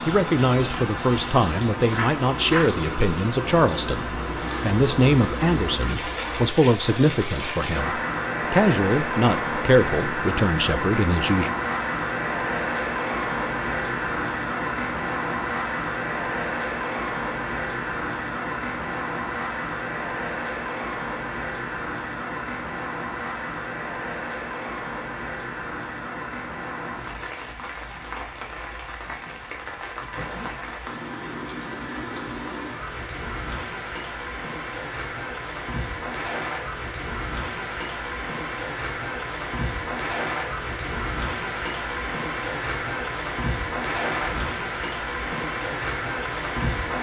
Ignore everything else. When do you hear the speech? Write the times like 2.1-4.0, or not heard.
0.1-11.5.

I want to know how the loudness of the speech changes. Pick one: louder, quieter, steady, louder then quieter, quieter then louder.
steady.